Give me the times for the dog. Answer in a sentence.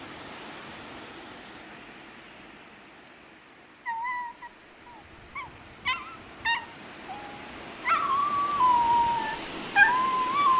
The dog can be heard from 3.9 to 10.5 s.